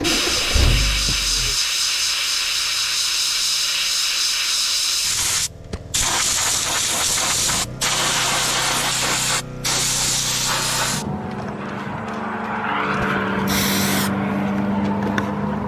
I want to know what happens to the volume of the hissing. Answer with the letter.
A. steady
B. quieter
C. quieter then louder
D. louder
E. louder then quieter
A.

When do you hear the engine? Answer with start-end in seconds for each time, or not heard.
0.0-1.6.